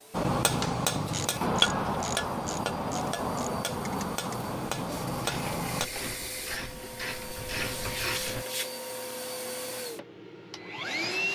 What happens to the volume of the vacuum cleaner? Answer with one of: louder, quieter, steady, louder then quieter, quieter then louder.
louder.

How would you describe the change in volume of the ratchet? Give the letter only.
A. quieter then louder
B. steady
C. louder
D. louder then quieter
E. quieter
A.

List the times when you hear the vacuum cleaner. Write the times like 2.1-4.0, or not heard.
0.0-11.3.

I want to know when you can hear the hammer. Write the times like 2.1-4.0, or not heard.
0.1-5.9.